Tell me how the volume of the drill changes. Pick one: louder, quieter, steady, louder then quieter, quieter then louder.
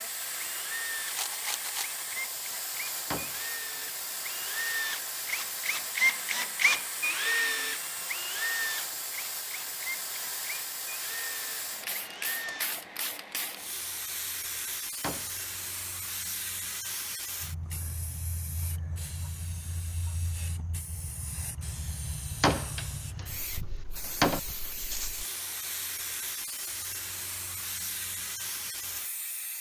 louder then quieter.